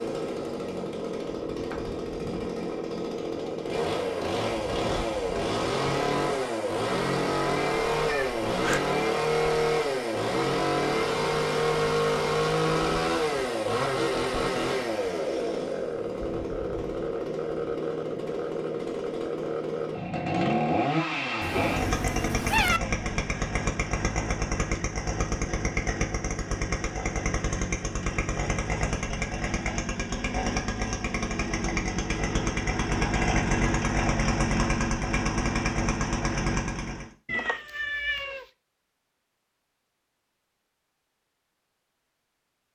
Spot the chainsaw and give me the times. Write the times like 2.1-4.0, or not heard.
0.0-37.1.